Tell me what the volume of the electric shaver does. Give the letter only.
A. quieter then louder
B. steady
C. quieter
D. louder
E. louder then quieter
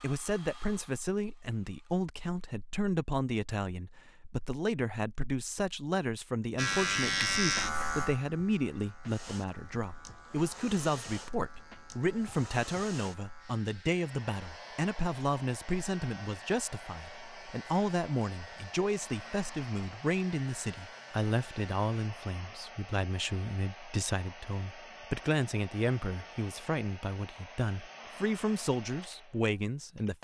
C.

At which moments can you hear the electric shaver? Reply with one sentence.
You can hear the electric shaver from 6.5 to 22.1 s.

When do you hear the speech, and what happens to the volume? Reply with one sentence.
You can hear the speech from 0.0 to 30.2 s, at a steady volume.